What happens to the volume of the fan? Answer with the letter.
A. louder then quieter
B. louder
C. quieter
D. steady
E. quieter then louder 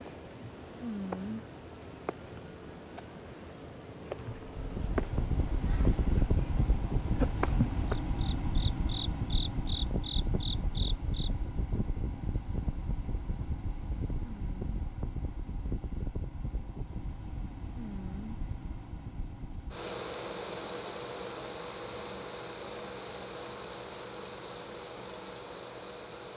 C.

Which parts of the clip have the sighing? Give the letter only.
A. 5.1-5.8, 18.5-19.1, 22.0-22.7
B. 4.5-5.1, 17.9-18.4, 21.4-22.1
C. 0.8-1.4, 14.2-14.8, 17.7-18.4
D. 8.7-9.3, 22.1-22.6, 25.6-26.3
C.